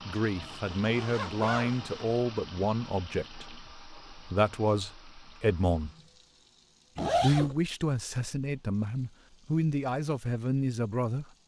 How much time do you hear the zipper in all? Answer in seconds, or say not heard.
2 s.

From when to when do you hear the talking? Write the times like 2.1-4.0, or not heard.
0.1-5.9, 7.2-11.3.